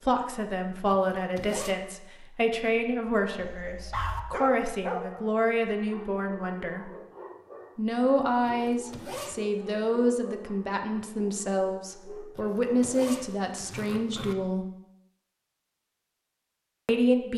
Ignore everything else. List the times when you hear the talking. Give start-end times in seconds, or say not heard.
0.1-6.9, 7.8-14.7, 16.9-17.3.